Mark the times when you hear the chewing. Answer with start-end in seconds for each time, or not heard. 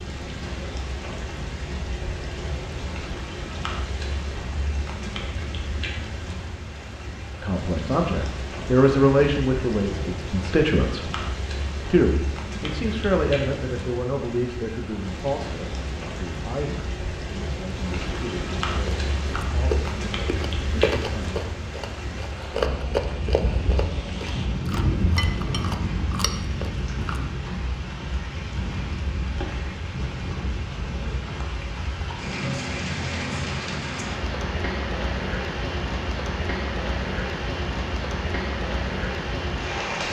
18.9-27.2.